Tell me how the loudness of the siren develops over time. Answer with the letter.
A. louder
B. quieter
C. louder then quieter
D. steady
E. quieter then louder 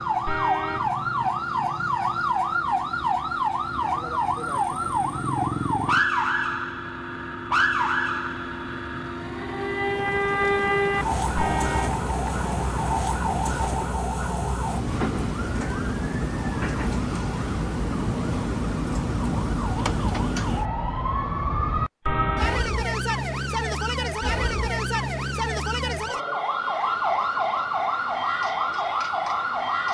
D.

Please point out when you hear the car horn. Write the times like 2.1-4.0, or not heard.
0.2-0.9, 11.3-12.0, 22.1-22.7.